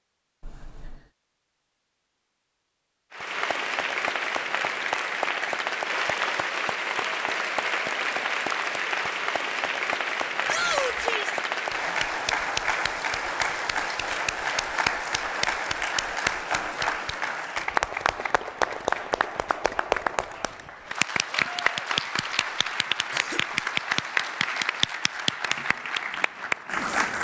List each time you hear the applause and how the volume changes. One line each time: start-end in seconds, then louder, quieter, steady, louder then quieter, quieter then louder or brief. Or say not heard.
3.1-27.1 steady.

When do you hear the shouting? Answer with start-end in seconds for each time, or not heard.
10.4-11.3.